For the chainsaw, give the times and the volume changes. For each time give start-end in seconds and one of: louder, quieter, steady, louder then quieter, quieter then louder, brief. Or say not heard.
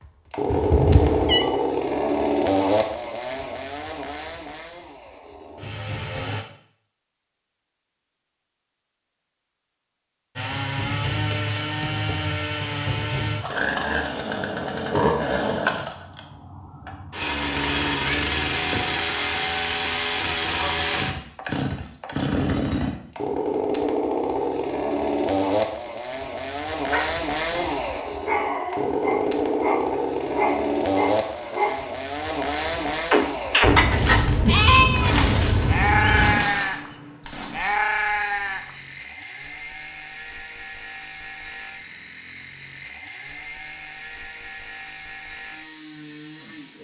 0.3-6.5 quieter
10.3-46.7 quieter.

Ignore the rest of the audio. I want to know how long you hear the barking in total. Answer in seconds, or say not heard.
5 s.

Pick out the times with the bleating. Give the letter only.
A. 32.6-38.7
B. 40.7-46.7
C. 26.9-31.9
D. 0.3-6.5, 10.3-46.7
A.